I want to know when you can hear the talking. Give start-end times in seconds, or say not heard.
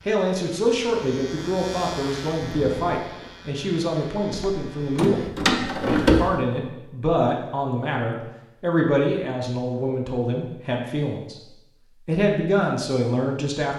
0.1-5.2, 5.8-11.3, 12.1-13.7.